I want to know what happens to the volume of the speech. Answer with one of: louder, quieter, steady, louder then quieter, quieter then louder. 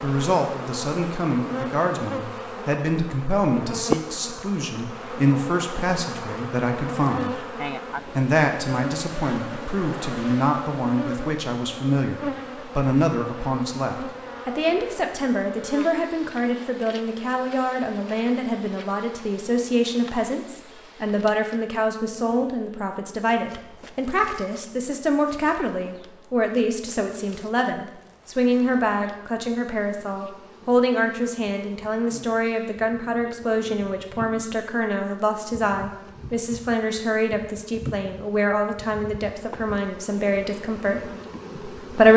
steady.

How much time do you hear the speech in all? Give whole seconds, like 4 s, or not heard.
42 s.